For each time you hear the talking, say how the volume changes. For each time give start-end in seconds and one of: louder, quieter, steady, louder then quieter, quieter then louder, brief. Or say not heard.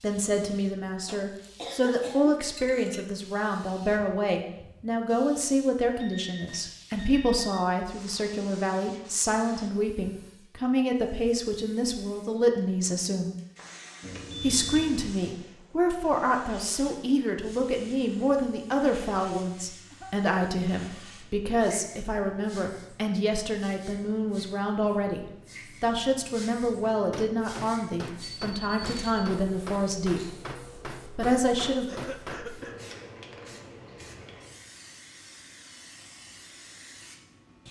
0.0-13.3 steady
14.4-30.2 steady
31.1-31.9 brief.